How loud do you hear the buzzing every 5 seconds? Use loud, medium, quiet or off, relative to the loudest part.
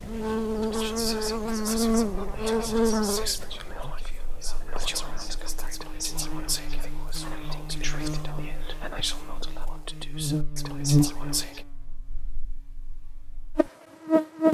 loud, quiet, loud.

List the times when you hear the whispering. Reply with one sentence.
You can hear the whispering from 0.6 to 11.7 s.